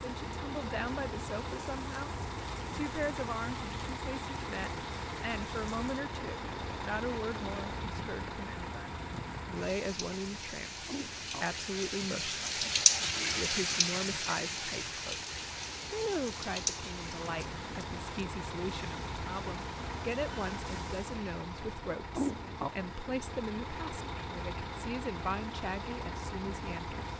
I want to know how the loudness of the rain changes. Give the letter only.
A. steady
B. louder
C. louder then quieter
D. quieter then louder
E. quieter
C.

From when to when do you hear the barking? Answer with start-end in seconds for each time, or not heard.
not heard.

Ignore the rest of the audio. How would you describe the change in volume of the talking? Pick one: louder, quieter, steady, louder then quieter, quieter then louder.
steady.